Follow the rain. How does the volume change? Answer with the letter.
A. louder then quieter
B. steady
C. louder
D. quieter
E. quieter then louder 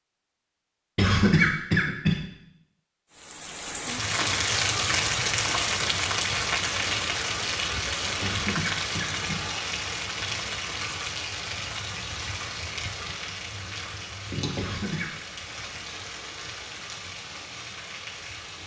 D.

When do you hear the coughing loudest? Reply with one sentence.
The volume of the coughing peaks at 1 second.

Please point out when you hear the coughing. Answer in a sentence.
The coughing can be heard from 0.9 to 2.2 s, from 8.2 to 9.4 s and from 14.6 to 15.1 s.